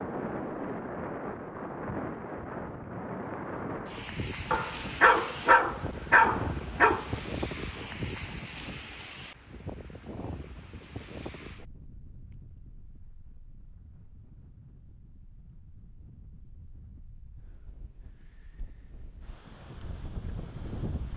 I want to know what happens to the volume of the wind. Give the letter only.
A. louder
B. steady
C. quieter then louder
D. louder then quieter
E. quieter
C.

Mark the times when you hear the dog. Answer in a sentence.
You can hear the dog from 4.5 to 7.2 s.